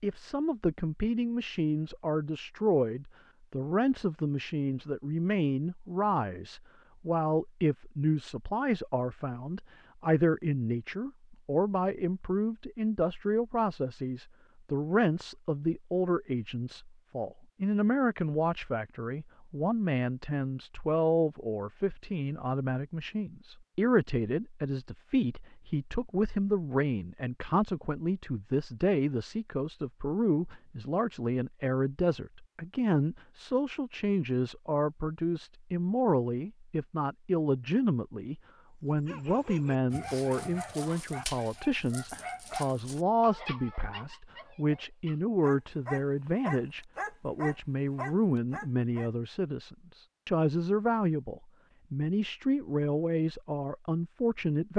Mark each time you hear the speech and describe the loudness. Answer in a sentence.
The speech can be heard from 0.0 to 54.7 s, at a steady volume.